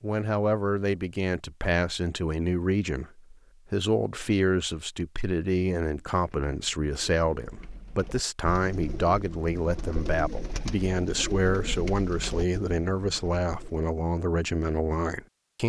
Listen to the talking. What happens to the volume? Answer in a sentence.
The volume of the talking stays about the same.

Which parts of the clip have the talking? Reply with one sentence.
You can hear the talking from 0.0 to 15.6 s.